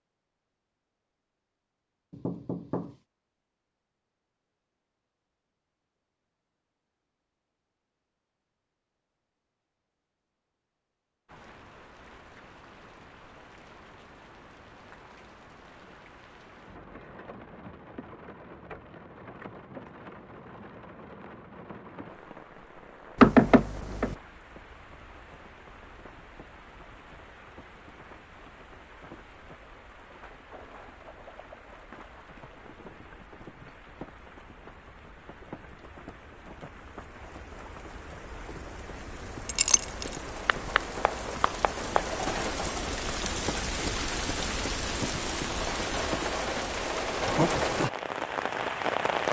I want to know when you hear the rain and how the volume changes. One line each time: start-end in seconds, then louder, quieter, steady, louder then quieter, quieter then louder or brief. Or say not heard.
11.2-49.2 louder.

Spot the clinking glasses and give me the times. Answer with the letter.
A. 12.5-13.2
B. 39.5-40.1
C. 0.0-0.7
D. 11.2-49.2
B.